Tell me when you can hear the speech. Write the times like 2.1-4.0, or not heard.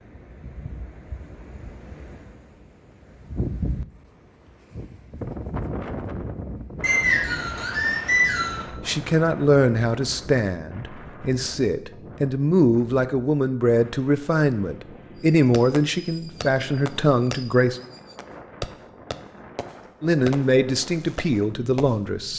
8.8-17.8, 20.0-22.3.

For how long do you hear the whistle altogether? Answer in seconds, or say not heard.
2 s.